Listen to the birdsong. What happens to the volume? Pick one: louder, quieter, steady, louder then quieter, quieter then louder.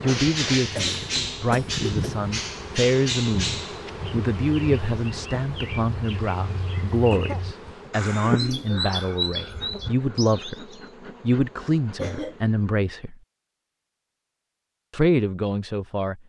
quieter then louder.